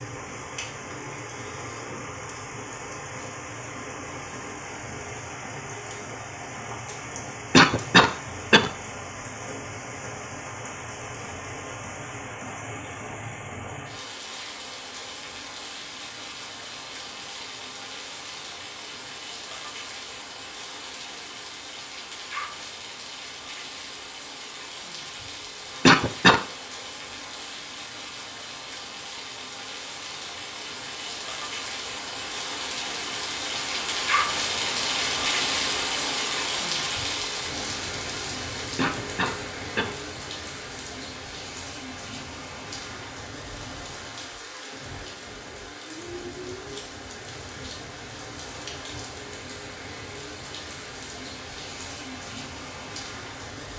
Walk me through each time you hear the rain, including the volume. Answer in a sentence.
You can hear the rain from 0.0 to 53.7 s, getting louder then quieter.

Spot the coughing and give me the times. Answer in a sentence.
The coughing can be heard from 7.5 to 8.7 s, from 25.9 to 26.4 s and from 38.8 to 40.0 s.